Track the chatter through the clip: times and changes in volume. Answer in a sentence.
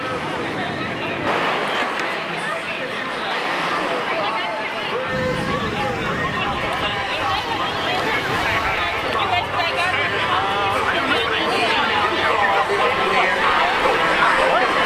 The chatter can be heard from 0.0 to 14.8 s, getting louder.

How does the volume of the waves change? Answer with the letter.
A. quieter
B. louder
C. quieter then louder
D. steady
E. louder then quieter
A.